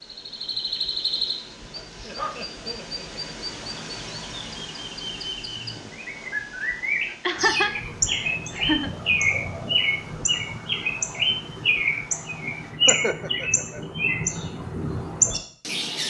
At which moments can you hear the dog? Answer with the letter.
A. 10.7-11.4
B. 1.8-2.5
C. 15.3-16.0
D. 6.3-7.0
B.